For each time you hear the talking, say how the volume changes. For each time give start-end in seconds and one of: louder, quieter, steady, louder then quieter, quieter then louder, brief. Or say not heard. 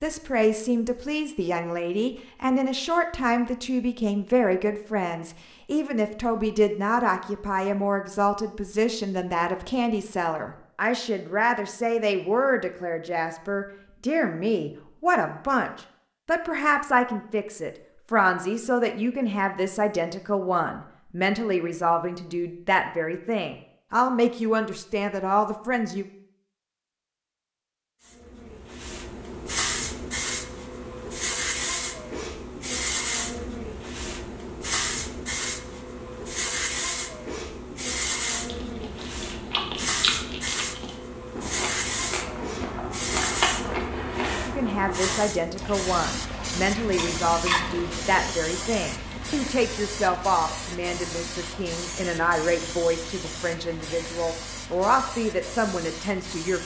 0.0-26.1 steady
44.5-56.6 steady.